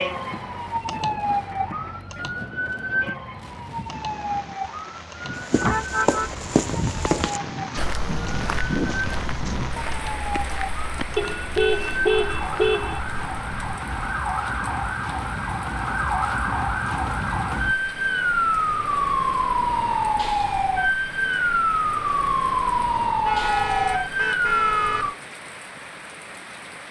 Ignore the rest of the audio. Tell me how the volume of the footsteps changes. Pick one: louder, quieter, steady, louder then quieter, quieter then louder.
quieter.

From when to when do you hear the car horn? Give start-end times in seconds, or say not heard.
5.5-7.2, 11.2-13.0, 23.2-25.1.